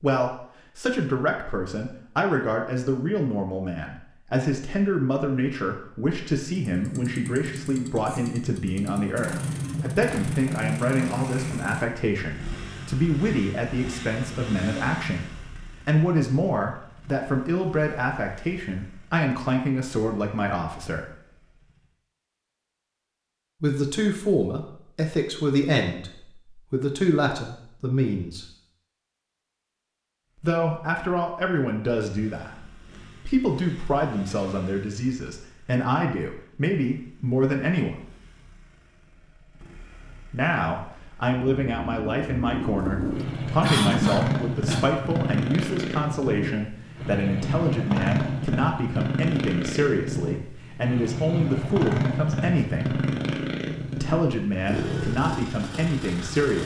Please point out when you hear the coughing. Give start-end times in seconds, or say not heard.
43.6-44.9.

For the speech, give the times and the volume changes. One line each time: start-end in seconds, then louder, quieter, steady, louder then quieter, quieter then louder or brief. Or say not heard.
0.0-21.1 steady
23.6-28.4 steady
30.4-38.0 steady
40.3-53.0 steady
54.0-56.6 brief.